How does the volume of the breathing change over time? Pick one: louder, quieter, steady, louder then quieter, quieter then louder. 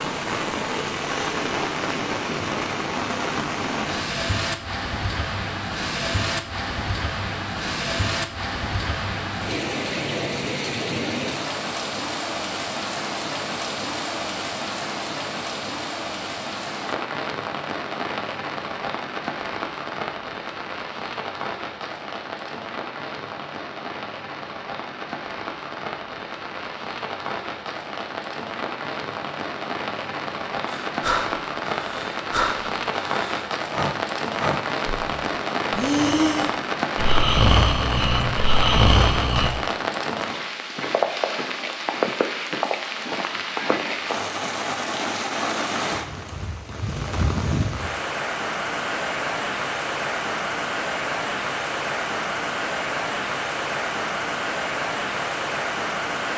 louder.